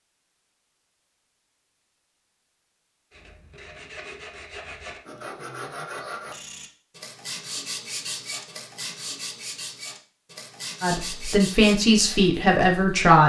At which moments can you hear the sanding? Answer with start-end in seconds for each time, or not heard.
3.1-13.1.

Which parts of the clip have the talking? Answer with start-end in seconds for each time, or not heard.
10.8-13.2.